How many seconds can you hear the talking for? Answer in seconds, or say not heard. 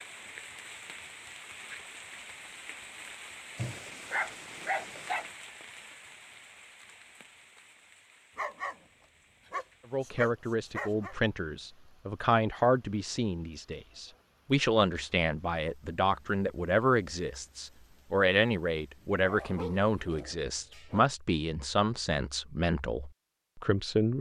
14 s.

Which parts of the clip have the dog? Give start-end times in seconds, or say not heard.
3.5-5.2, 8.3-8.8, 9.4-11.2, 19.2-21.1.